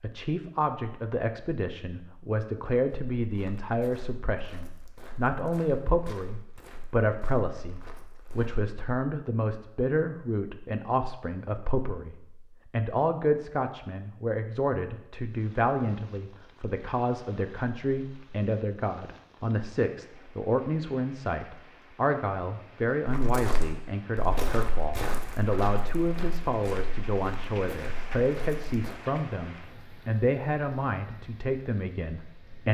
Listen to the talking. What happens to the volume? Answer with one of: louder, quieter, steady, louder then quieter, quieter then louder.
steady.